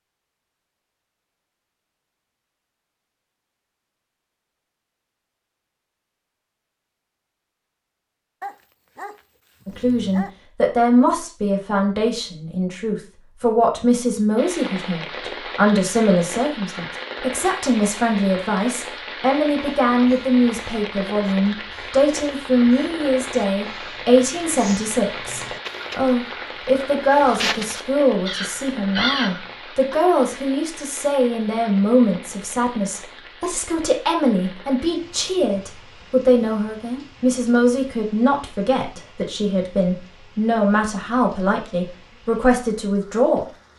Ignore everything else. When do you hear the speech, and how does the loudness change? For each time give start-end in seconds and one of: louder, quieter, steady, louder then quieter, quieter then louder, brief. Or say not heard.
9.7-43.5 steady.